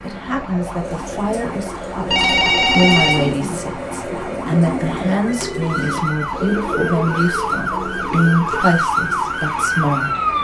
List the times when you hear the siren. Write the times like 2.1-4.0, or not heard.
0.2-10.3.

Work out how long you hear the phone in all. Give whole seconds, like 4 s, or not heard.
2 s.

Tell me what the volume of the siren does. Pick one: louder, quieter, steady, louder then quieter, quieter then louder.
louder.